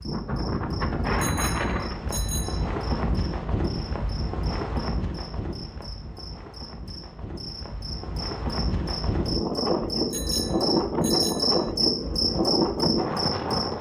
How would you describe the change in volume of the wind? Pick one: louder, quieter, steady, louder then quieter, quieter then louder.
quieter then louder.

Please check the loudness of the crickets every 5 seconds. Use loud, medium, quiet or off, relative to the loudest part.
quiet, medium, loud.